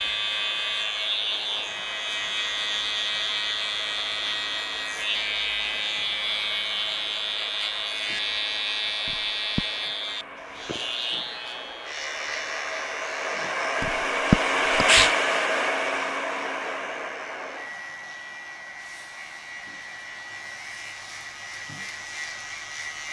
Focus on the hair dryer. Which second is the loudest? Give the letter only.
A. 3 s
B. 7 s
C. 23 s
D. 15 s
D.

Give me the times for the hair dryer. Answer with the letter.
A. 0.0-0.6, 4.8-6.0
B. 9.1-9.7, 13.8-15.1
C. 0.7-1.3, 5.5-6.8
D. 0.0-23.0
D.